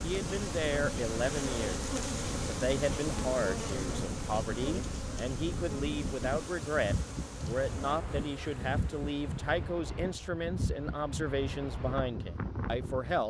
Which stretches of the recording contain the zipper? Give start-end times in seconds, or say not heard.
not heard.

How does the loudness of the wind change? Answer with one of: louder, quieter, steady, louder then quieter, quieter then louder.
steady.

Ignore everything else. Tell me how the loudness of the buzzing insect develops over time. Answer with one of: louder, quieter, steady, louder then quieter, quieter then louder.
quieter.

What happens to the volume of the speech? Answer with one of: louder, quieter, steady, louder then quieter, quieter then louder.
steady.